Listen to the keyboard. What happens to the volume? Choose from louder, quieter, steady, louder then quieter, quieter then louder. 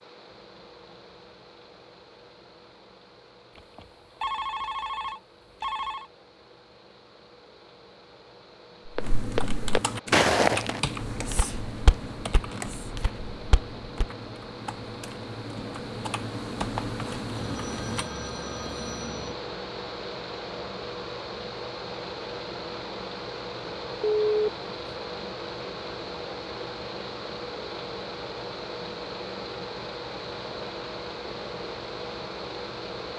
quieter then louder.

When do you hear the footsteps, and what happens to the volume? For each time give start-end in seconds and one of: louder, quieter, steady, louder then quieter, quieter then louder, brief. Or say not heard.
8.9-14.1 quieter then louder.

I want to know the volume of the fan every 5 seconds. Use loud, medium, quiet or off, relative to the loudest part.
quiet, quiet, medium, loud, loud, loud, loud.